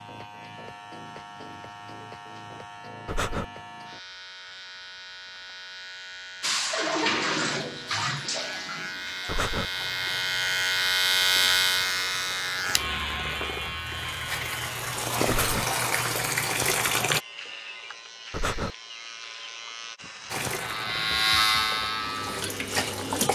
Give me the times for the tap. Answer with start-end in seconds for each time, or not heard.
6.4-17.2, 20.3-23.3.